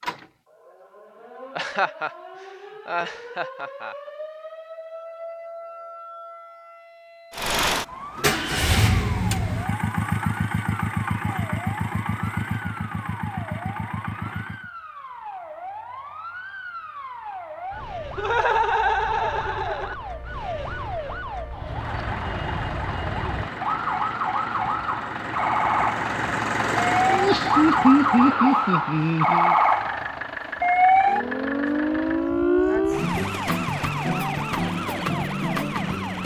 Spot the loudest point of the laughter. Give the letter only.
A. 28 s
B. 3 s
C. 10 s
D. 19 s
A.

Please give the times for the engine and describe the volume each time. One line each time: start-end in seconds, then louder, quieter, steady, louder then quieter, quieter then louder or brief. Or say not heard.
7.3-14.7 quieter
21.6-32.3 louder then quieter.